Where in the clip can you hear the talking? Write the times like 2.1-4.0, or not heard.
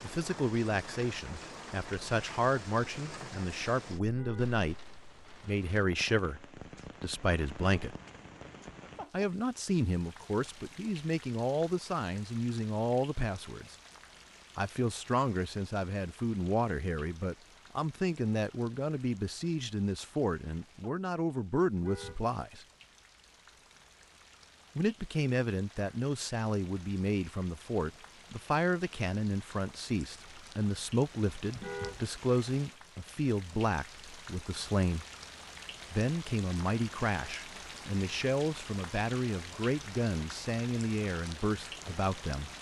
0.0-4.8, 5.4-8.0, 9.1-13.8, 14.6-22.6, 24.8-35.0, 35.9-42.5.